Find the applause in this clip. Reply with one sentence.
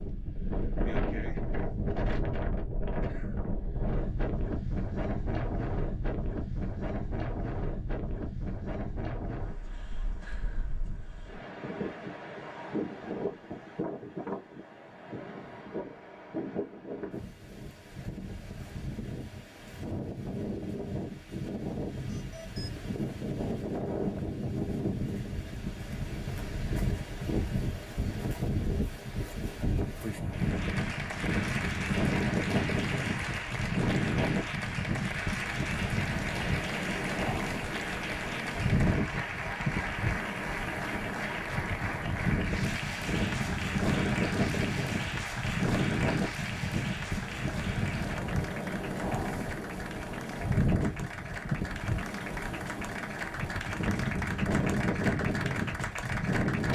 The applause can be heard from 30.2 to 56.7 s.